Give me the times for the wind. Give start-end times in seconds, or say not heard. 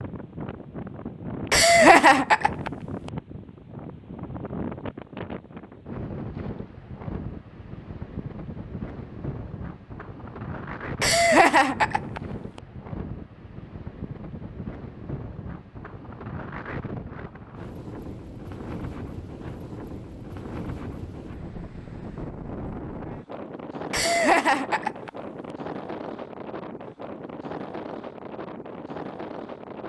0.0-29.8.